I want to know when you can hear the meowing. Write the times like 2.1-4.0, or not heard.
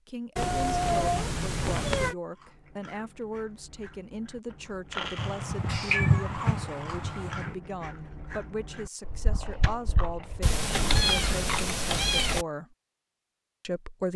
0.3-2.1, 5.2-7.5, 10.4-12.4.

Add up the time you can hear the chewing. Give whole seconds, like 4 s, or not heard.
9 s.